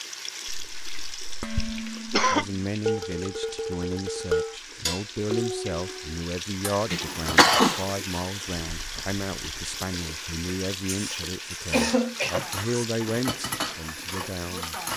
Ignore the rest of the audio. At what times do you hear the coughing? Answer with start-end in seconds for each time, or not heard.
0.5-2.5, 6.9-7.8, 10.8-12.8.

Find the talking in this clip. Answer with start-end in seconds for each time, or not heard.
2.3-14.9.